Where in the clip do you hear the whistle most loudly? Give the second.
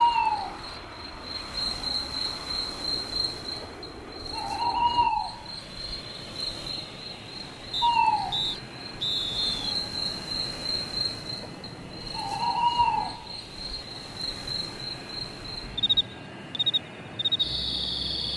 9 s.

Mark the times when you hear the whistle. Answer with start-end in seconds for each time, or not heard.
7.7-9.8.